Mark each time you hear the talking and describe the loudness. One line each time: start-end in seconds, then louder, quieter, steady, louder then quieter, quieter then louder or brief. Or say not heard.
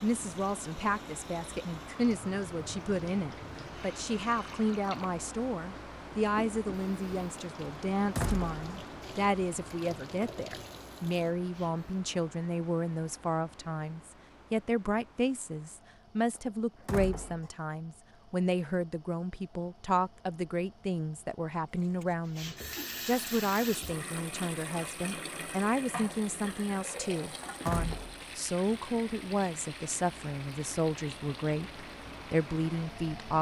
0.0-33.3 steady.